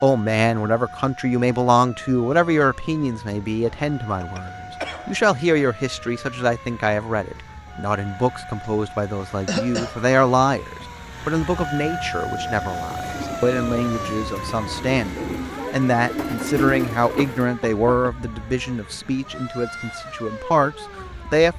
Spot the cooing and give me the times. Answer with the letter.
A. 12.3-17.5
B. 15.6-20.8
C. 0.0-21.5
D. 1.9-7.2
A.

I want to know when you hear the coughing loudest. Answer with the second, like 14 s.
10 s.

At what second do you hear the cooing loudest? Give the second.
17 s.